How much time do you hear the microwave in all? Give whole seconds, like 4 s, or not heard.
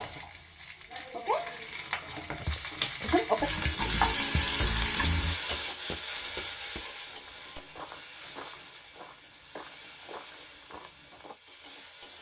not heard.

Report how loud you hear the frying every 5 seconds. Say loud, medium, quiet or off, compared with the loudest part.
loud, medium, quiet.